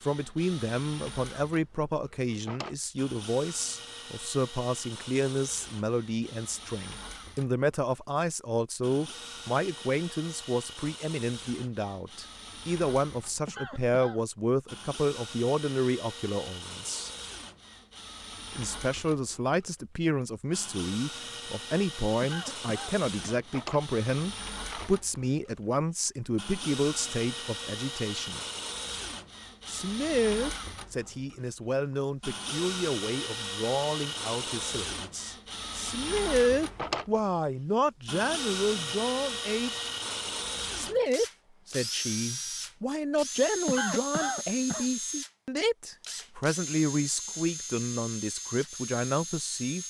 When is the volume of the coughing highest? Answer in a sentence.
The loudest moment of the coughing is at 44 seconds.